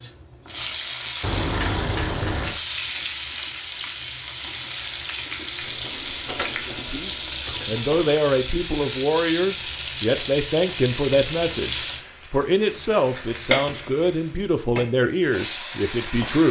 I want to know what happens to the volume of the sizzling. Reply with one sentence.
The loudness of the sizzling stays about the same.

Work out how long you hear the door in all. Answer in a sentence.
The door can be heard for 4 seconds in total.